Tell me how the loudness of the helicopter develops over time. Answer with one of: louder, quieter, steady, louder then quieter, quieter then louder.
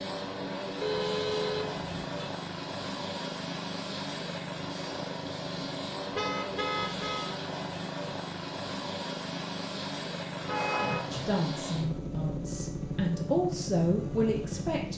steady.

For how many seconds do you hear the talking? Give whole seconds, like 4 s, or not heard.
4 s.